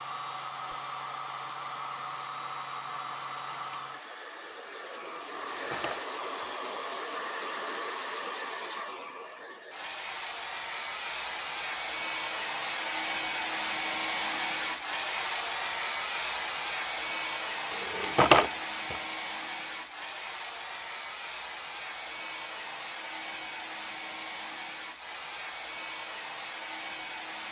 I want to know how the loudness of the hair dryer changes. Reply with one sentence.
The loudness of the hair dryer goes up, then down.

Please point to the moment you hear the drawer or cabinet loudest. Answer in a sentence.
The volume of the drawer or cabinet peaks at 18 seconds.